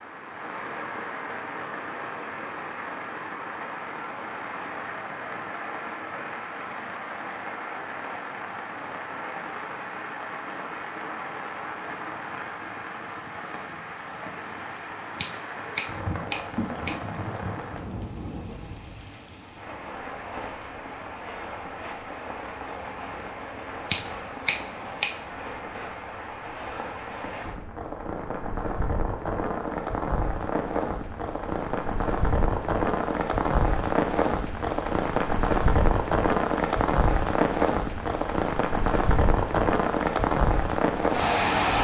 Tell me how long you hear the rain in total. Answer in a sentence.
You can hear the rain for 42 seconds altogether.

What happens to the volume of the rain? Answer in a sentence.
The loudness of the rain goes up.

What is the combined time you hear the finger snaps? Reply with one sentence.
The finger snaps can be heard for 3 seconds in total.